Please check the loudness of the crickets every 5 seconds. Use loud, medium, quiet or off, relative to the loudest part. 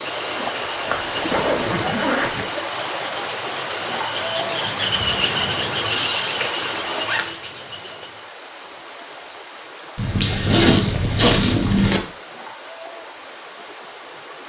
medium, loud, off.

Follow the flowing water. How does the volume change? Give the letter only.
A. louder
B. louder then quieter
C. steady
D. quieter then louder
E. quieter
E.